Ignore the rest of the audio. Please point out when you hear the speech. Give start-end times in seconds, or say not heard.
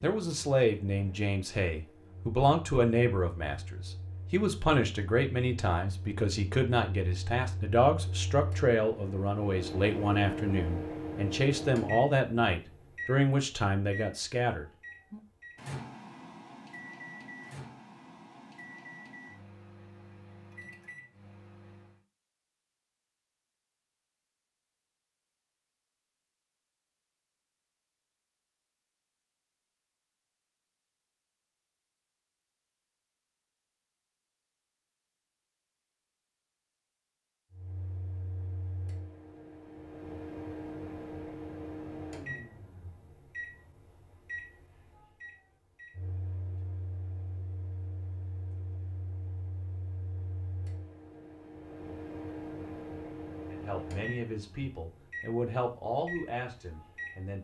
0.0-15.2, 53.5-57.3.